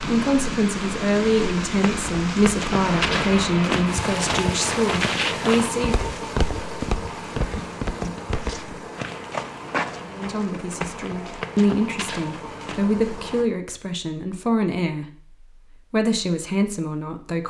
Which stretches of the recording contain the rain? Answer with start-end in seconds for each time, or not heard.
0.0-13.4.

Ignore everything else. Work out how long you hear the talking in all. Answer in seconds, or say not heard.
13 s.